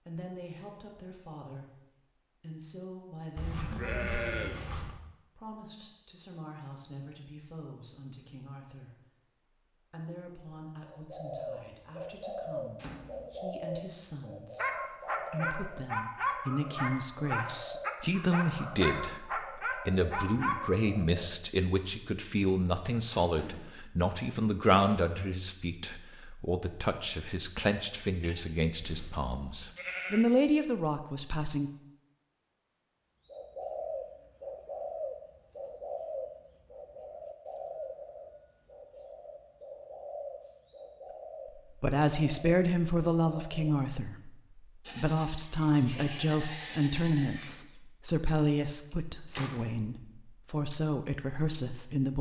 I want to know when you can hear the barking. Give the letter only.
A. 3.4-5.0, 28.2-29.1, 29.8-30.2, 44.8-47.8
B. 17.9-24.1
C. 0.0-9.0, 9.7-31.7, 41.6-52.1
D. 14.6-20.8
D.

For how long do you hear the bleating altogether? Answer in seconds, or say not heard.
6 s.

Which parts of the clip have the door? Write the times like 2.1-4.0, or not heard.
12.8-13.3, 23.1-23.8, 48.9-49.6.